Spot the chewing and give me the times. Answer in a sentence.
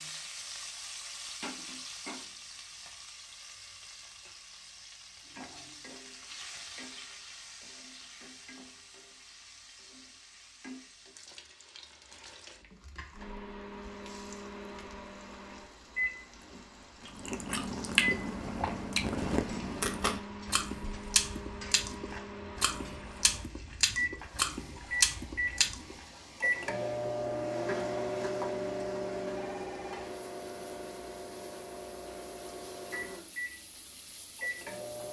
The chewing can be heard from 17.1 to 25.9 s.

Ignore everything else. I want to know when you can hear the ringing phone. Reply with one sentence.
You can hear the ringing phone from 29.4 to 30.1 s.